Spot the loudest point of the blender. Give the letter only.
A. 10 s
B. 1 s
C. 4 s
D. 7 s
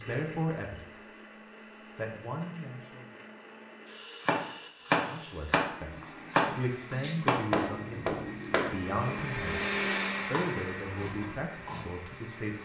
A.